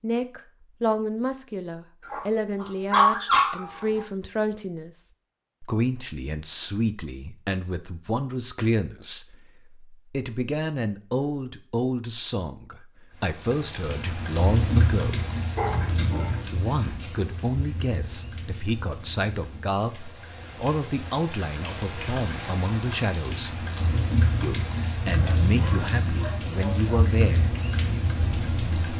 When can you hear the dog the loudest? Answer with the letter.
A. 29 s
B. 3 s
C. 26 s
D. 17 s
B.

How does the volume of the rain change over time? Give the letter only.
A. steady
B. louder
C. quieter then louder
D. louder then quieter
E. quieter
C.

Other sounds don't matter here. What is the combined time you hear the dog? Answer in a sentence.
You can hear the dog for 5 seconds altogether.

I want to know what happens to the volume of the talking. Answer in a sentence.
The loudness of the talking stays about the same.